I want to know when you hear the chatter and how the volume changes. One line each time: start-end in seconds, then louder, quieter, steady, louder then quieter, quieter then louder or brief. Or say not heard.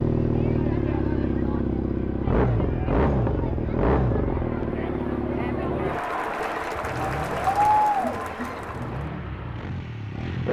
0.0-9.1 louder.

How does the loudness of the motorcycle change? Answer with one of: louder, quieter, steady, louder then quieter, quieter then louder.
quieter.